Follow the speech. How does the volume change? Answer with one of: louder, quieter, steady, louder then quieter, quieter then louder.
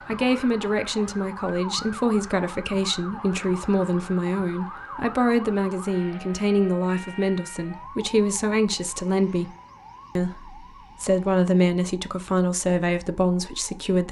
steady.